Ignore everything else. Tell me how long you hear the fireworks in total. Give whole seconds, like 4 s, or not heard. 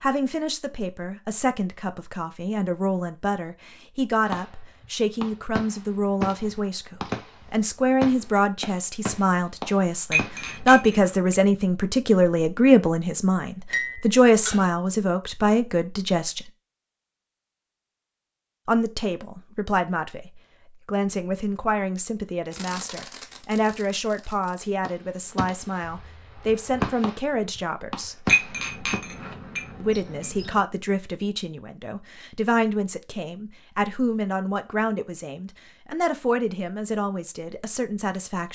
13 s.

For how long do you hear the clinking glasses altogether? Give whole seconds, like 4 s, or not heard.
4 s.